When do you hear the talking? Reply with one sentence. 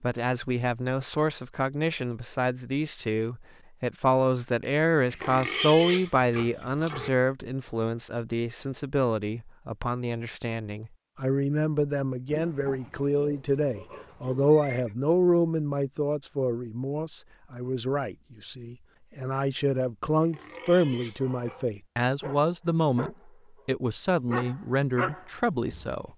You can hear the talking from 0.0 to 26.1 s.